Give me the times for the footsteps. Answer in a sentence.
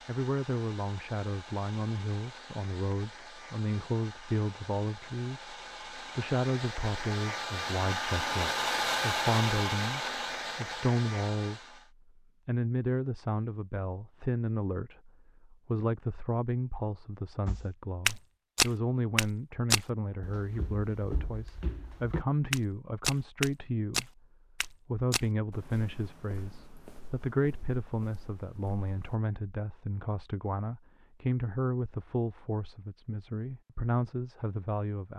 The footsteps can be heard from 17.4 to 29.1 s.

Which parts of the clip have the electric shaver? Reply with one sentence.
You can't hear the electric shaver here.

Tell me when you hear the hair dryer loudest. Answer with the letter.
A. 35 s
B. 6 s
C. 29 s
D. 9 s
D.